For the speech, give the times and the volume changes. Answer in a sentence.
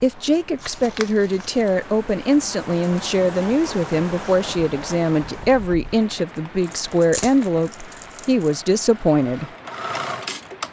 You can hear the speech from 0.0 to 9.5 s, at a steady volume.